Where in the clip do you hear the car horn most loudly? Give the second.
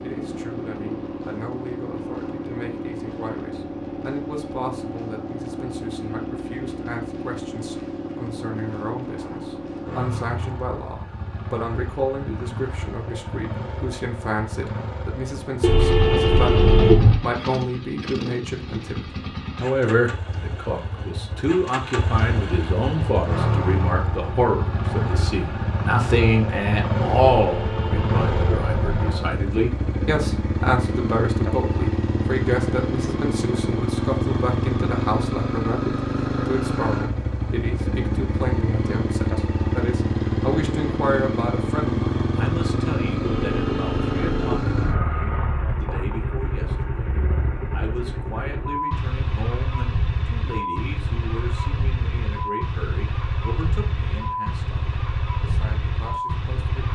17 s.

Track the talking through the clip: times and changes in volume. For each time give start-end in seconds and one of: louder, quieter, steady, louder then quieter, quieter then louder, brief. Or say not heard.
0.0-56.9 louder then quieter.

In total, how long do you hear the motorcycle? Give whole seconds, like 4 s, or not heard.
57 s.